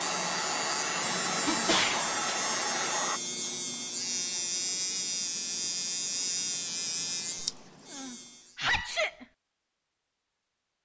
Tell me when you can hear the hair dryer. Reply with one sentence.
You can hear the hair dryer from 0.0 to 3.2 s.